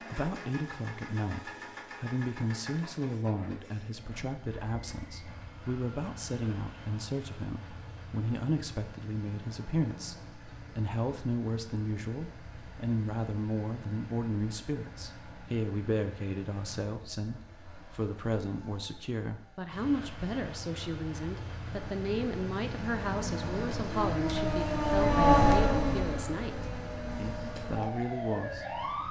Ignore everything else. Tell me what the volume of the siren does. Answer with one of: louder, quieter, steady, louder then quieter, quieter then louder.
louder then quieter.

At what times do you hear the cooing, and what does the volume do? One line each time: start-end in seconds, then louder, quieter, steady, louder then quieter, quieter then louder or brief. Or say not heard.
not heard.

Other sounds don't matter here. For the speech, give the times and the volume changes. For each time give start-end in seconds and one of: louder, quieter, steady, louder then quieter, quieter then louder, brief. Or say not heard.
0.0-28.8 steady.